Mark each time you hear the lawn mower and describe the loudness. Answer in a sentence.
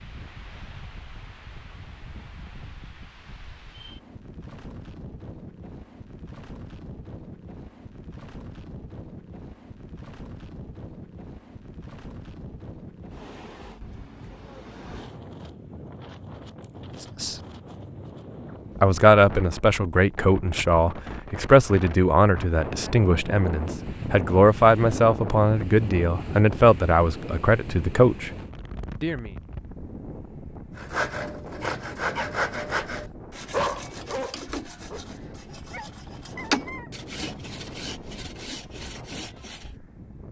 You can't hear the lawn mower here.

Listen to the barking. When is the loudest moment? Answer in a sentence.
The loudest moment of the barking is at 34 seconds.